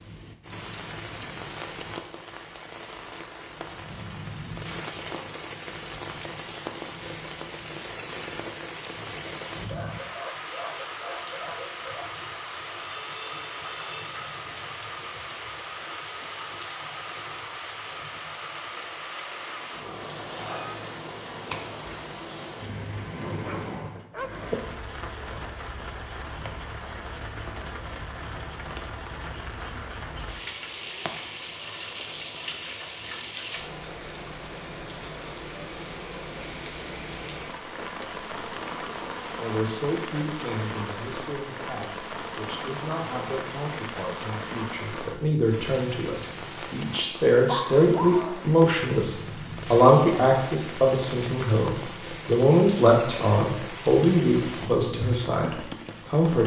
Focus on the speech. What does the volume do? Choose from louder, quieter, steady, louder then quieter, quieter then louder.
louder.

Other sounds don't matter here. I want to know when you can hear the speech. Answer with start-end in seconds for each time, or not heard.
39.4-56.4.